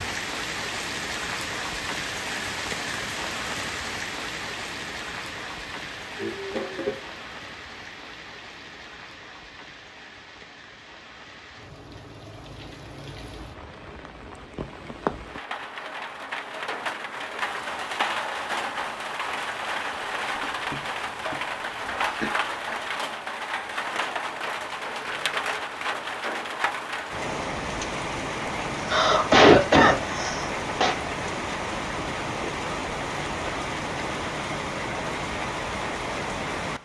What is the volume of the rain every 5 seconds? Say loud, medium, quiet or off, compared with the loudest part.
loud, medium, quiet, loud, loud, loud, loud, loud.